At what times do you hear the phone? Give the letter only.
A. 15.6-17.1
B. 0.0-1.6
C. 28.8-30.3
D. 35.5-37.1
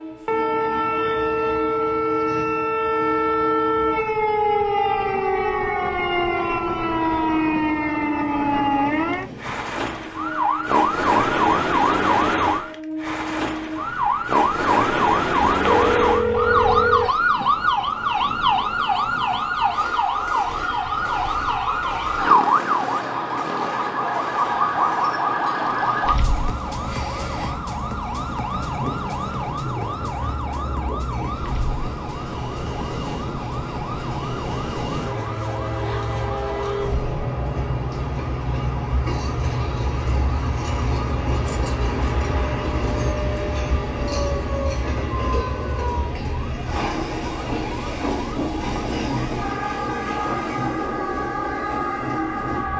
A.